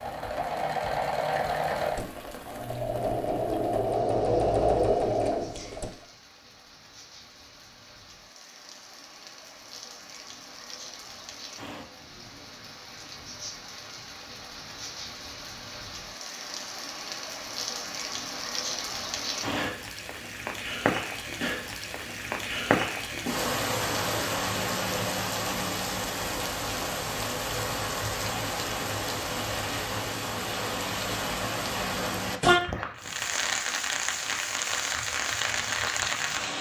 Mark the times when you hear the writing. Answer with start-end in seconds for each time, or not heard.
not heard.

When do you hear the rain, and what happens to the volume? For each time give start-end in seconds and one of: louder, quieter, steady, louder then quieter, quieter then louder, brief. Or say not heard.
0.0-36.5 louder.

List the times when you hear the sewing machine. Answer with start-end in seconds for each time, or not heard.
0.0-5.9.